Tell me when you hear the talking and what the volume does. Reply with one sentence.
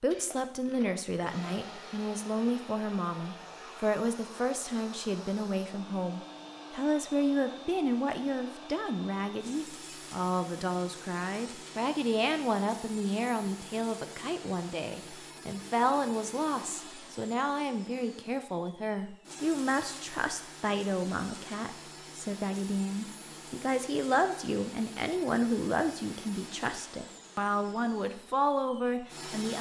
The talking can be heard from 0.0 to 29.5 s, at a steady volume.